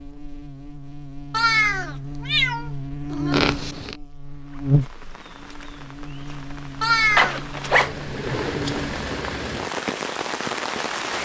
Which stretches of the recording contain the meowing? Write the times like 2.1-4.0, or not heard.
1.3-3.4, 6.8-7.4.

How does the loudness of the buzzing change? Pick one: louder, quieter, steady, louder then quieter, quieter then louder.
louder then quieter.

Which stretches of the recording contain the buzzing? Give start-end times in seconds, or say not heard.
0.0-8.9.